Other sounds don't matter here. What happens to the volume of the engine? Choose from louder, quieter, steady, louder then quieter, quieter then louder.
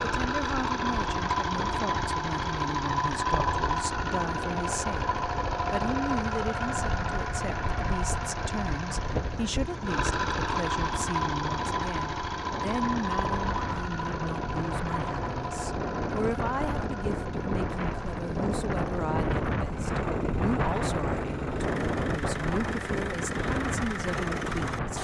quieter.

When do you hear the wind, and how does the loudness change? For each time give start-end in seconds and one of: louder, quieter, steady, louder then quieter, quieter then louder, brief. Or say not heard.
0.1-24.9 louder.